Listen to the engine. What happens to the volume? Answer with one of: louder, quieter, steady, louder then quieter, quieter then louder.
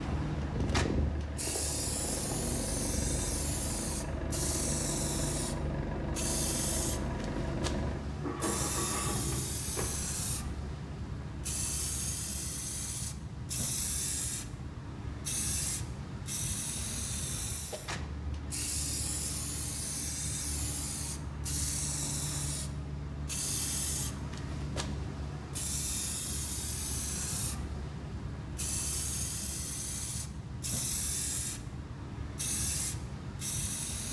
steady.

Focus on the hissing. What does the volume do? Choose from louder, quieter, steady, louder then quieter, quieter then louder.
steady.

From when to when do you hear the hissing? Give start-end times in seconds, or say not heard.
0.0-34.0.